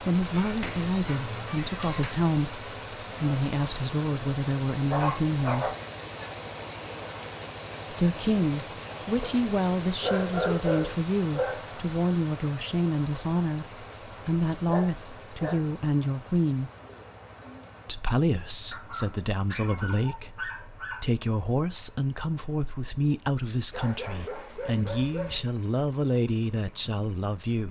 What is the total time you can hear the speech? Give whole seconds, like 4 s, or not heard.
24 s.